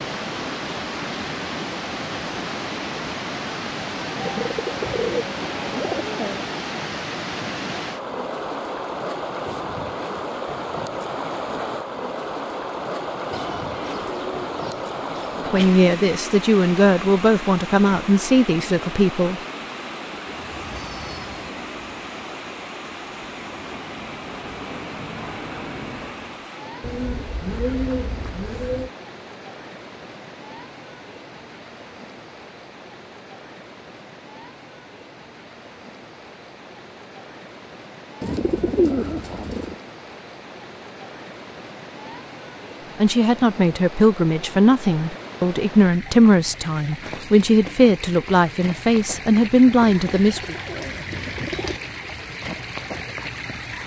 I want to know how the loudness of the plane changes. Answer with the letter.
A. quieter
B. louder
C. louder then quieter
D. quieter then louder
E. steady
D.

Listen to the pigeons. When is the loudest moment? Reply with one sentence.
The volume of the pigeons peaks at 39 seconds.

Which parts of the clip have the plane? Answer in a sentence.
The plane can be heard from 20.3 to 26.5 s.